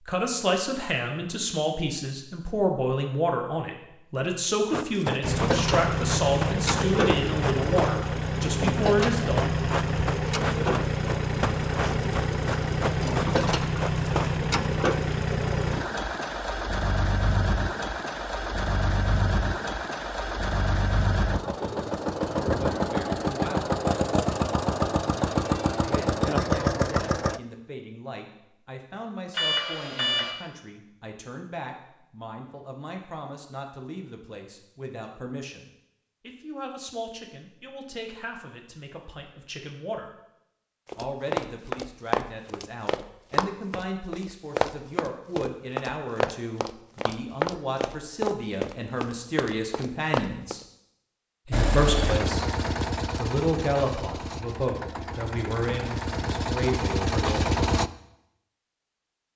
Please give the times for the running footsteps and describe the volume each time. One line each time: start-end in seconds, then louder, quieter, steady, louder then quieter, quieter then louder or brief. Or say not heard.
4.7-14.3 steady
40.9-50.6 steady.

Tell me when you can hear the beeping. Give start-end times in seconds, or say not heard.
29.3-30.4.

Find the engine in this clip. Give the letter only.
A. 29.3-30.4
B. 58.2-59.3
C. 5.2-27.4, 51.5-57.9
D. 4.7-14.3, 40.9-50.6
C.